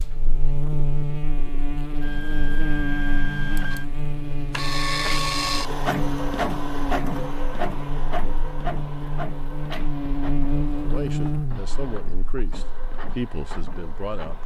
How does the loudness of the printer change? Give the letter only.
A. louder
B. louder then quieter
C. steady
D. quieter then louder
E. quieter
B.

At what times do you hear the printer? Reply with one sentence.
You can hear the printer from 2.0 to 14.4 s.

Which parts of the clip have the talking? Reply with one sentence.
The talking can be heard from 10.8 to 14.4 s.